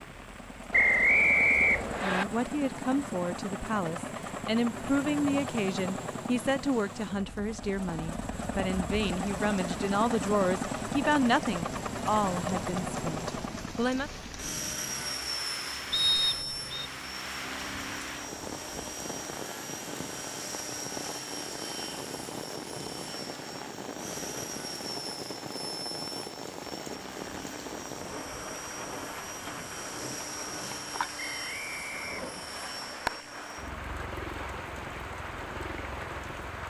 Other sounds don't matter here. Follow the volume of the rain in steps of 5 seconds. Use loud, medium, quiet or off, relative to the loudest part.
medium, medium, medium, loud, loud, loud, loud, loud.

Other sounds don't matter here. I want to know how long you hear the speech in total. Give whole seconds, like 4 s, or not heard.
12 s.